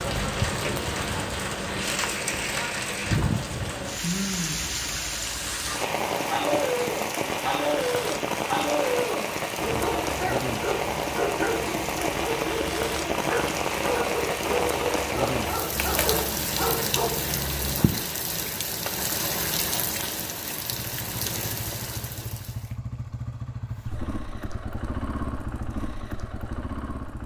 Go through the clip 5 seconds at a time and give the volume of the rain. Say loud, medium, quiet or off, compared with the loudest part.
loud, loud, loud, loud, medium, off.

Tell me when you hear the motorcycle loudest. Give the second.
25 s.